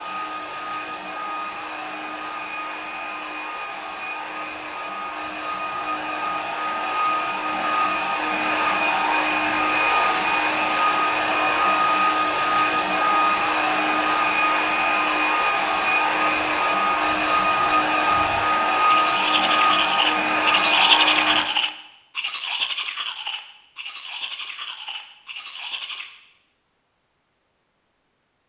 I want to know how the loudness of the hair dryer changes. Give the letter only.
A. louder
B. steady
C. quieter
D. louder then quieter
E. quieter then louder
A.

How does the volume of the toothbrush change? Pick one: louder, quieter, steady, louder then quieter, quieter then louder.
louder then quieter.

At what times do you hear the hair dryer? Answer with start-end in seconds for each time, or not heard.
0.0-21.4.